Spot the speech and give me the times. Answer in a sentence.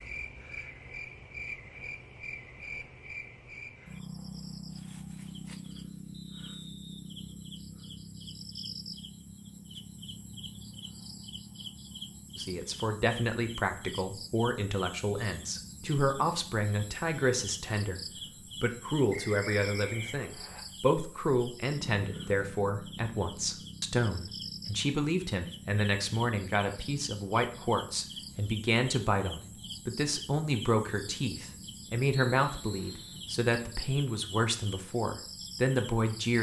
You can hear the speech from 12.3 to 18.0 s and from 18.6 to 36.3 s.